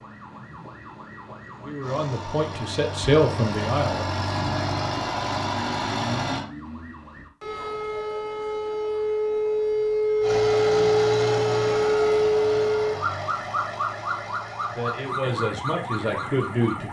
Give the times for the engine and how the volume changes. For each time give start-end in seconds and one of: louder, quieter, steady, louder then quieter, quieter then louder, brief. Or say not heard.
1.8-6.5 louder
10.2-16.8 quieter.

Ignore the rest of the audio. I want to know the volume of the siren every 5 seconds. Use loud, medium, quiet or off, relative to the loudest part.
quiet, medium, loud, medium.